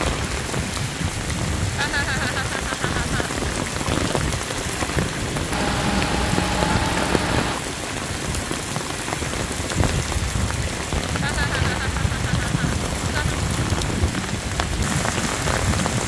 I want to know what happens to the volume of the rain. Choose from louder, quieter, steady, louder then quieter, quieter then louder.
steady.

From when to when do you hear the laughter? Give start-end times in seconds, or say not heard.
1.8-3.4, 5.5-7.6, 11.2-13.3.